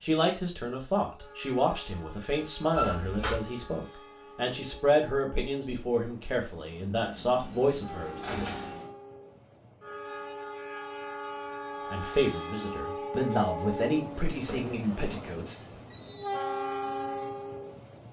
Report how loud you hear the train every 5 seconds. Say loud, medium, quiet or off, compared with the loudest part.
quiet, medium, loud, loud.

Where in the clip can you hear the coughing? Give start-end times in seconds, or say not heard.
not heard.